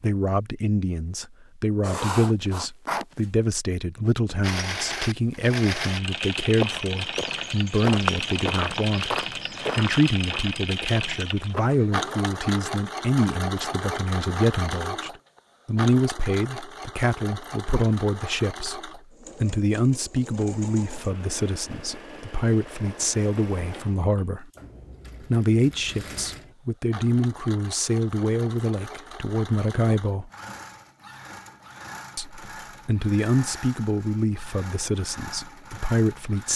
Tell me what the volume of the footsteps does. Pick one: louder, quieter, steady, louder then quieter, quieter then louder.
louder then quieter.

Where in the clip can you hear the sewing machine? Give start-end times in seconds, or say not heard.
4.4-36.5.